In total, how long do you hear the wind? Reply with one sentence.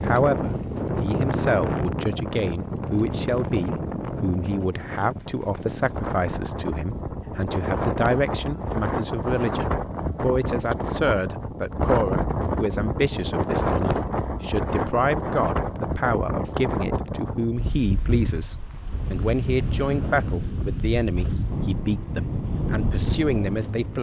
The wind can be heard for 24 seconds in total.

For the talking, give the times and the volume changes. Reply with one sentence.
You can hear the talking from 0.0 to 23.9 s, at a steady volume.